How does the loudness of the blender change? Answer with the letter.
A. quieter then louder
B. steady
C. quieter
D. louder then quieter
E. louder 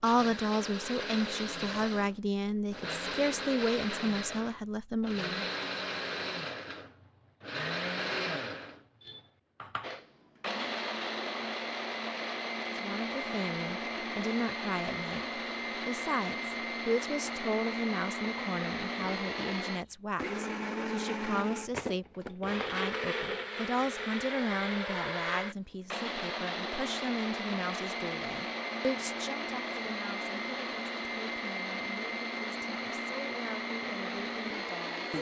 B.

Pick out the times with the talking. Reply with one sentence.
You can hear the talking from 0.0 to 5.5 s and from 12.7 to 35.0 s.